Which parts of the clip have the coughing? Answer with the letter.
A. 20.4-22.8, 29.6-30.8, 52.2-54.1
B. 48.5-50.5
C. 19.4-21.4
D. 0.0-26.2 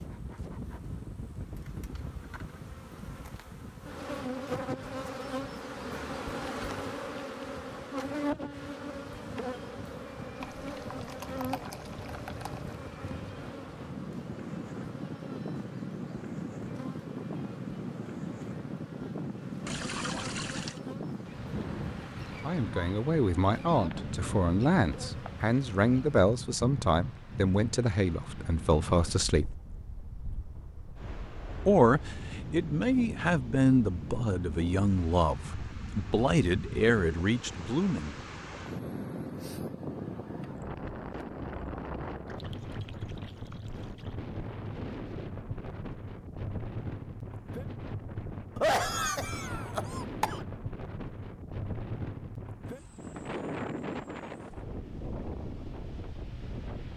B.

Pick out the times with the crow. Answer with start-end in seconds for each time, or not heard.
not heard.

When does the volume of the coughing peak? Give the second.
49 s.